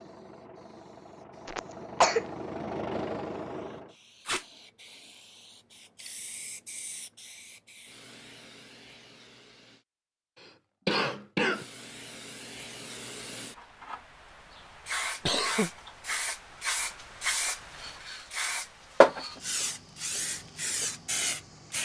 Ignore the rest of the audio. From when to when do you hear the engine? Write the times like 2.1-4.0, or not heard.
0.0-4.0.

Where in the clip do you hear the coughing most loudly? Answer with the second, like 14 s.
2 s.